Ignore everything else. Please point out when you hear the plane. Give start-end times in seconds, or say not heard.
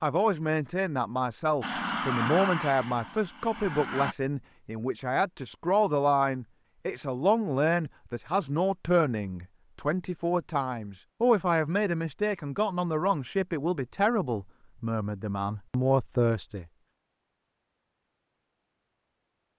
1.6-4.2.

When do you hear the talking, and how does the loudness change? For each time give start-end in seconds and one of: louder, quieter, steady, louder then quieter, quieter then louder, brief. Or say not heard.
0.0-16.6 steady.